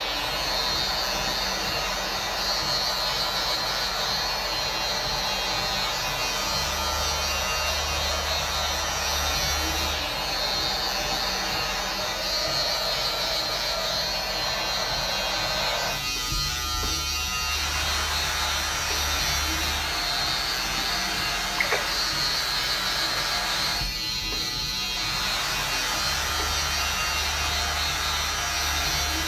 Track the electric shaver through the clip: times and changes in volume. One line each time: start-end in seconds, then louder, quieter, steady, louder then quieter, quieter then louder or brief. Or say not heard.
0.0-29.2 steady.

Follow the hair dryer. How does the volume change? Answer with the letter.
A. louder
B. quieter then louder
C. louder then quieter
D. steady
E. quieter
D.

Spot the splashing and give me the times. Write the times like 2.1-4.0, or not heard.
21.5-22.1.